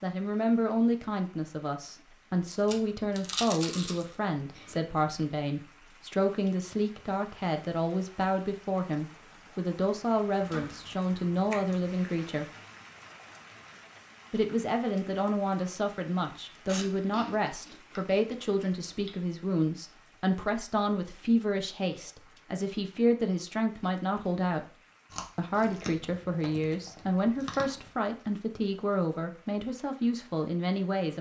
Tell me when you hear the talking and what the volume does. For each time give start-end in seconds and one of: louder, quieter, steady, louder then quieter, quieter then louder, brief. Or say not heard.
0.0-12.5 steady
14.3-24.8 steady
25.4-31.1 steady.